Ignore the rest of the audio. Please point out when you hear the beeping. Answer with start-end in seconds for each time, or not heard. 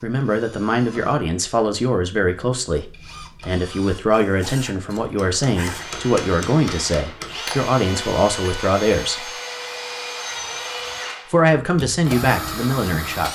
not heard.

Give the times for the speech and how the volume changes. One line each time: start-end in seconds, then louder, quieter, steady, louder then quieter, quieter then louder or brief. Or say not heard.
0.0-9.3 steady
11.3-13.3 brief.